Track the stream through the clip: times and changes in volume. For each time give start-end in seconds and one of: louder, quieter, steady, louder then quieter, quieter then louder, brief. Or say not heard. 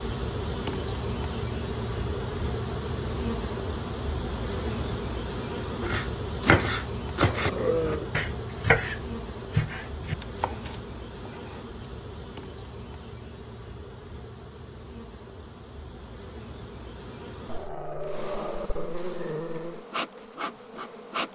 not heard.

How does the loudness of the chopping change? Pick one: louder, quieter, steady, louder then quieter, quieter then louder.
quieter.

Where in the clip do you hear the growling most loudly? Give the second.
8 s.